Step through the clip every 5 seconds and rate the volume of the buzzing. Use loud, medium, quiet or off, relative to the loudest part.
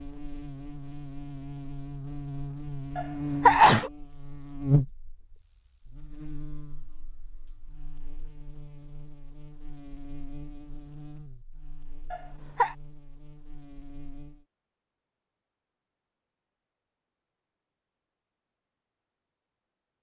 loud, quiet, quiet, off.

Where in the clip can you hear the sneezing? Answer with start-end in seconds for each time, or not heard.
3.0-3.9, 12.1-12.8.